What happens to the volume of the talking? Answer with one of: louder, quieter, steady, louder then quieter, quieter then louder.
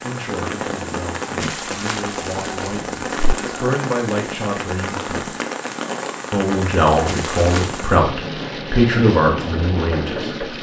louder.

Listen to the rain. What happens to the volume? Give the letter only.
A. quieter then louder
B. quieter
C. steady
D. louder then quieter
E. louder
C.